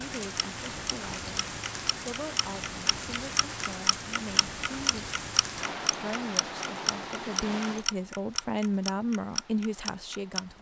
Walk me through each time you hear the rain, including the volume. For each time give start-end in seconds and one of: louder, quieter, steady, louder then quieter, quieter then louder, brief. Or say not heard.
0.0-10.5 quieter.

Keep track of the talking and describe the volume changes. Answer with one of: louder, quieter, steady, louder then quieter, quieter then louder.
louder.